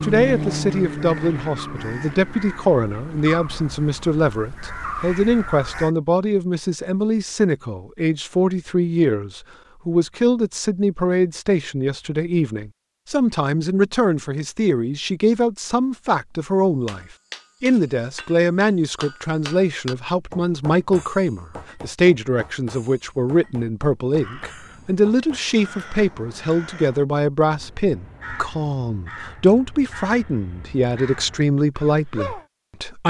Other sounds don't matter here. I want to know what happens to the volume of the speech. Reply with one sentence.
The loudness of the speech stays about the same.